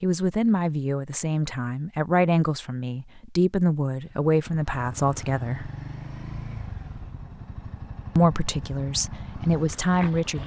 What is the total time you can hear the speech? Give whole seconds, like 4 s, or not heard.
8 s.